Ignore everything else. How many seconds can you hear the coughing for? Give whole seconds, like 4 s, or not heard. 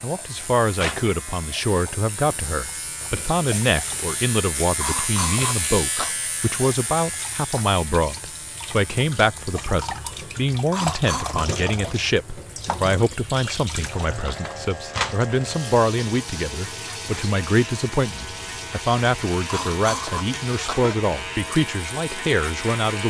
4 s.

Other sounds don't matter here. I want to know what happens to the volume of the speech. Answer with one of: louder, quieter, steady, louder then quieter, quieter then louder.
steady.